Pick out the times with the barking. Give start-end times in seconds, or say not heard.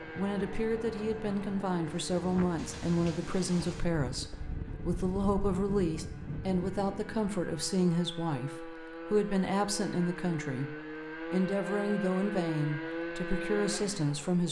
not heard.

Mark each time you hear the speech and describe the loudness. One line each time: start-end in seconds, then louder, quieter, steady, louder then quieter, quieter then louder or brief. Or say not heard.
0.1-14.4 steady.